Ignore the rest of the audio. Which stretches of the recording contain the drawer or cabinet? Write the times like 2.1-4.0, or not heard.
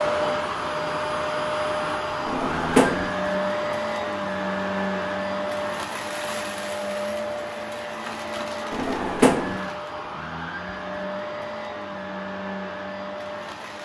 2.2-3.1, 8.7-9.6.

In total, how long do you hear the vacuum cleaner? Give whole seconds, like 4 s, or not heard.
14 s.